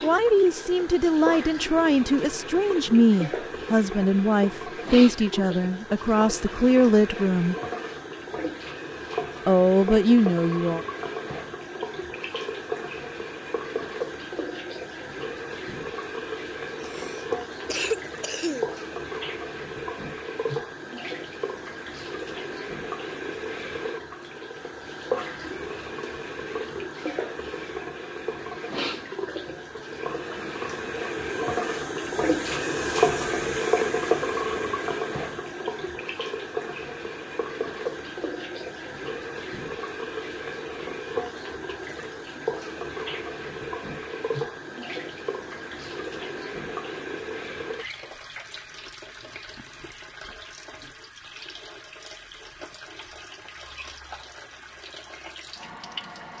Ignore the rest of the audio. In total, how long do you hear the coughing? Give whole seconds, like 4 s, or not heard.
2 s.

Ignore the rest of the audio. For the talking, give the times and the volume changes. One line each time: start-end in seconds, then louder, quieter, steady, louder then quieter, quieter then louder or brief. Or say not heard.
0.0-7.5 steady
9.4-10.8 brief.